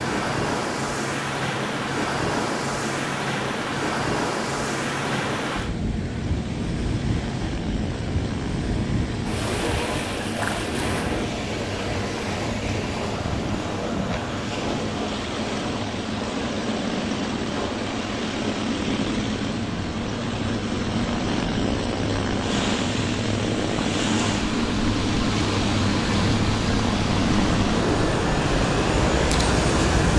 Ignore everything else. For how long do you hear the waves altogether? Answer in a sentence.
You can hear the waves for 30 seconds altogether.